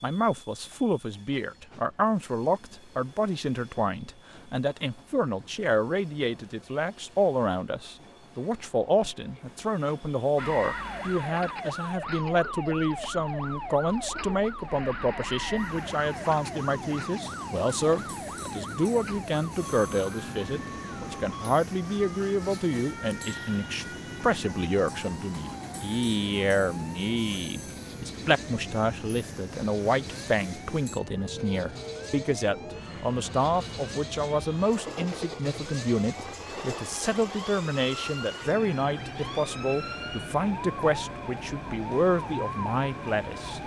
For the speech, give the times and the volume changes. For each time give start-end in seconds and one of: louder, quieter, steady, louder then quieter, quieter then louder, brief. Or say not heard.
0.0-43.6 steady.